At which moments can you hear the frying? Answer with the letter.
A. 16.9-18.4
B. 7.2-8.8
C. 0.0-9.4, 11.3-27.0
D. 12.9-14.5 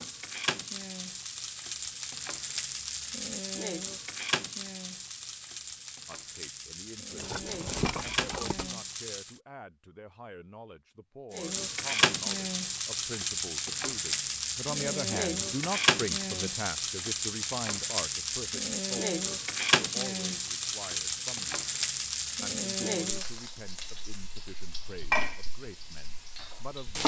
C.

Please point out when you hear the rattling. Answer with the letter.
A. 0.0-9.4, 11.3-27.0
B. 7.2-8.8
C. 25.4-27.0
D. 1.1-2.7
B.